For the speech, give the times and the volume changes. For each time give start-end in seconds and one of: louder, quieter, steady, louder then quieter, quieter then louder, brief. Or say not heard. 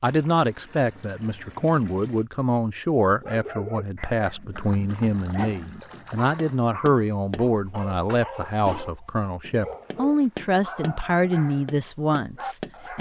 0.0-12.9 steady.